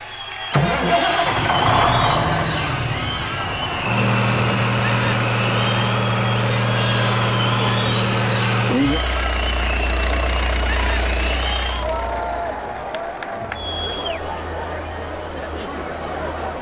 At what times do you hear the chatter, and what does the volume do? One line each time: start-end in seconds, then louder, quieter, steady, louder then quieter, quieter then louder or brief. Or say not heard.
0.0-16.5 steady.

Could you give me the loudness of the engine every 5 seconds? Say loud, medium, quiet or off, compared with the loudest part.
loud, loud, medium, off.